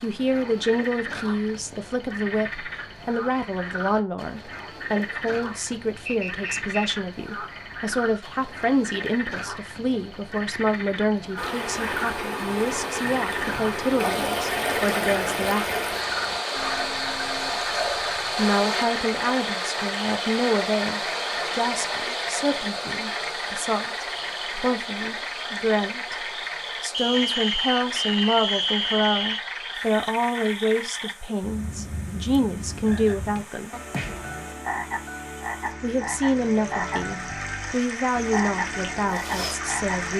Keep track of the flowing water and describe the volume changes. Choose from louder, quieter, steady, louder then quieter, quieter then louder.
quieter then louder.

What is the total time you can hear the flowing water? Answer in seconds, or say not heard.
29 s.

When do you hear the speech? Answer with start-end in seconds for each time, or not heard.
0.0-15.8, 18.4-33.8, 35.8-40.1.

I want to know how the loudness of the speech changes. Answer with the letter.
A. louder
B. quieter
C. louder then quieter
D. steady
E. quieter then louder
D.